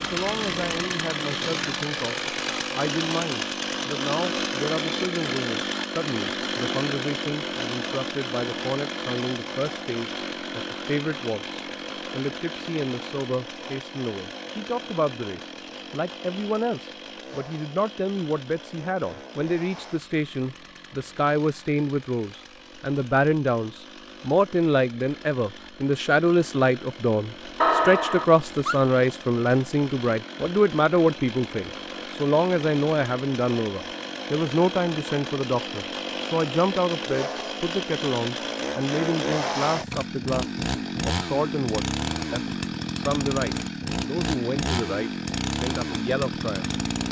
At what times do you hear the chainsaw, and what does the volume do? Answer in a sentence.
You can hear the chainsaw from 0.0 to 47.0 s, getting quieter then louder.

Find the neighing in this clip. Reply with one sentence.
You can hear the neighing from 27.6 to 28.8 s.